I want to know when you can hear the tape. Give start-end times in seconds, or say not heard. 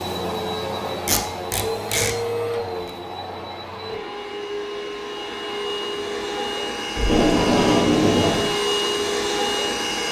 1.1-2.1, 7.0-8.5.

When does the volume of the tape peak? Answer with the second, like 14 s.
8 s.